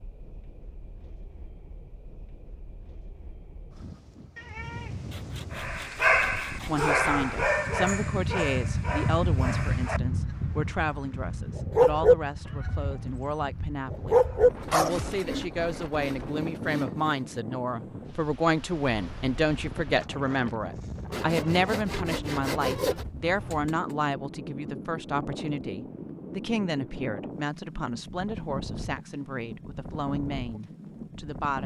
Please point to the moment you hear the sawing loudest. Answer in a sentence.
The loudest moment of the sawing is at 23 seconds.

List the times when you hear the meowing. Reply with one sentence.
The meowing can be heard from 4.3 to 5.2 s, from 12.4 to 13.2 s and from 23.5 to 23.9 s.